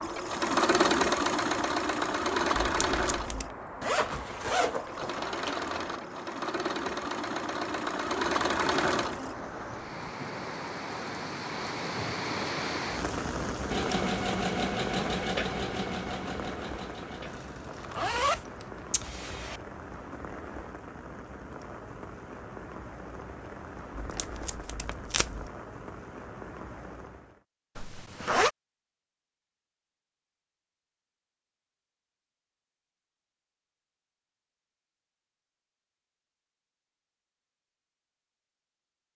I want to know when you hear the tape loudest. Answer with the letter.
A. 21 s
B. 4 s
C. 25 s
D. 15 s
C.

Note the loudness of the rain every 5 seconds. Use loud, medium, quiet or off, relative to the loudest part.
medium, medium, loud, medium, medium, medium, off, off.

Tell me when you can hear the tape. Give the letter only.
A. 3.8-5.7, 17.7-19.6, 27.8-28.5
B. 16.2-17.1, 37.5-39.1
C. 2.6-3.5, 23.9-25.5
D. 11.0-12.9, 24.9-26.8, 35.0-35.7
C.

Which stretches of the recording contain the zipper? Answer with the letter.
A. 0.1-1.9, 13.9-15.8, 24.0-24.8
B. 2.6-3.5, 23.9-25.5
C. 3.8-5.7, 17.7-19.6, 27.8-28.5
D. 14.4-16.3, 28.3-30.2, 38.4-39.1
C.